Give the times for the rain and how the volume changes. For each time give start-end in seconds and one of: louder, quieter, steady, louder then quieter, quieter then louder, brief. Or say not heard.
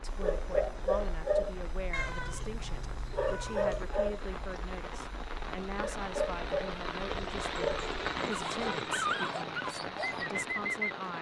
0.0-11.1 louder.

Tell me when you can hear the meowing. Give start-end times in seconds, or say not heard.
1.9-3.9, 7.0-9.0.